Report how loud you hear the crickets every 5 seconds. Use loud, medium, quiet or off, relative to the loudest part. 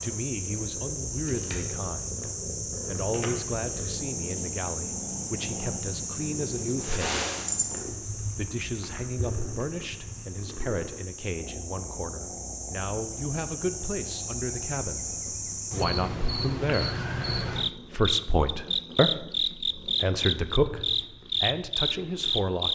medium, medium, medium, loud, loud.